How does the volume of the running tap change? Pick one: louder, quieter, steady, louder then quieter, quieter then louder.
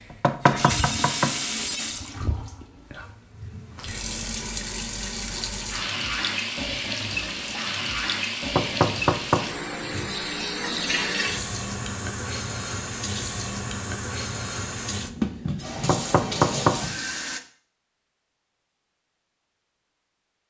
steady.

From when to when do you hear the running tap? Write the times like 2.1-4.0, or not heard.
0.0-17.4.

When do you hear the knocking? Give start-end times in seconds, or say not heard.
0.1-1.4, 8.6-10.2, 15.8-16.8.